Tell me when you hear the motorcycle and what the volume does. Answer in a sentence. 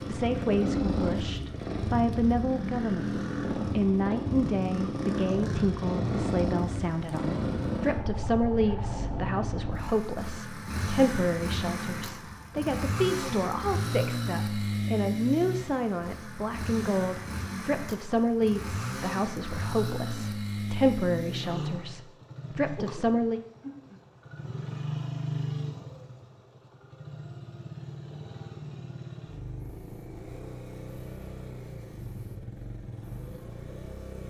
The motorcycle can be heard from 0.0 to 34.2 s, getting quieter.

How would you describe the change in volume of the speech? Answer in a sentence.
The volume of the speech stays about the same.